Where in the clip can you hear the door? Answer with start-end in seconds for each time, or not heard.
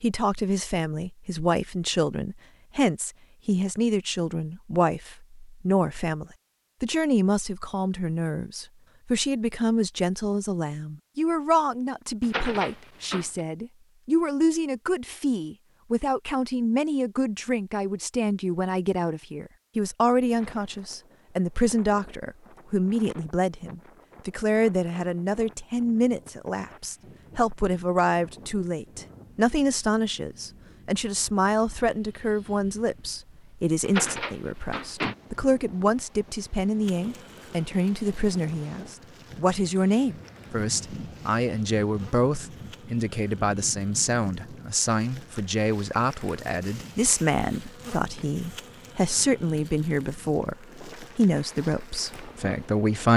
12.2-13.4, 33.9-35.1.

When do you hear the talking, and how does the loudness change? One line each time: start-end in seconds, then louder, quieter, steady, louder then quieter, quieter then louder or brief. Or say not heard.
0.0-53.1 steady.